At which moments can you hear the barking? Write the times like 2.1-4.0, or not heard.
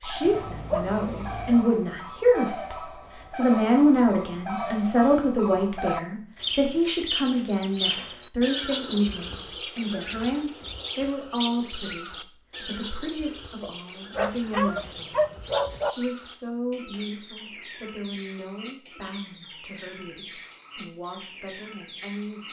0.2-1.6, 14.2-15.9.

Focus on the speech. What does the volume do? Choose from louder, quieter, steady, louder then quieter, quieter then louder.
quieter.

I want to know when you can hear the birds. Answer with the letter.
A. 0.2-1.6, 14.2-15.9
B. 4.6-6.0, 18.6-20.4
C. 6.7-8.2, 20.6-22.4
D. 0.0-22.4
D.